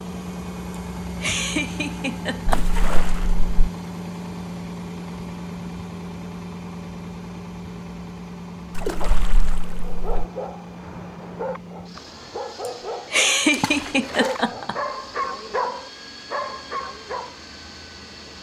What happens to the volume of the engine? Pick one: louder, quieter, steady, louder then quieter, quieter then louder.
quieter.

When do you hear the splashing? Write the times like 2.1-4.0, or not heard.
2.5-3.5, 8.8-10.1, 13.5-14.3.